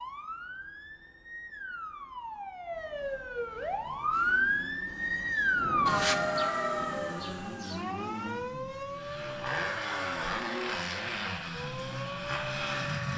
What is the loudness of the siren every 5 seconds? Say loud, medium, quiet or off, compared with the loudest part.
loud, loud, medium.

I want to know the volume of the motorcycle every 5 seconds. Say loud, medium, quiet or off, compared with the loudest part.
quiet, medium, loud.